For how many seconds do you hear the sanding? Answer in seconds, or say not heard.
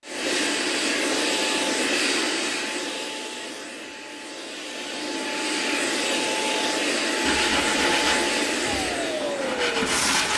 3 s.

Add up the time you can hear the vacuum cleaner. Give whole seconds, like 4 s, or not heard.
10 s.